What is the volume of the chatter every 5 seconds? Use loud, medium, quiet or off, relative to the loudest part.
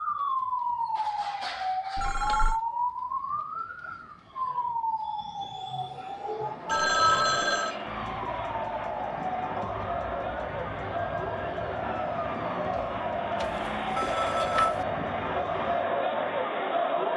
off, medium, loud, loud.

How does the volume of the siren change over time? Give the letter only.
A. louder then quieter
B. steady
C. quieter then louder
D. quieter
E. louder
D.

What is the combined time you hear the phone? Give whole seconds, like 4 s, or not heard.
3 s.